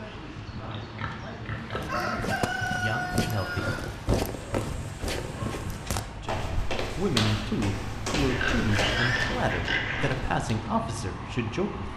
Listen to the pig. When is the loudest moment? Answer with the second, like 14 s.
9 s.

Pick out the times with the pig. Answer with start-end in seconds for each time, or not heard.
0.6-2.4, 4.2-6.1, 8.2-10.2.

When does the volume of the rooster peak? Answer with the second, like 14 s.
3 s.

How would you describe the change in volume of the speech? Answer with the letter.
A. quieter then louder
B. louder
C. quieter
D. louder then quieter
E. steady
B.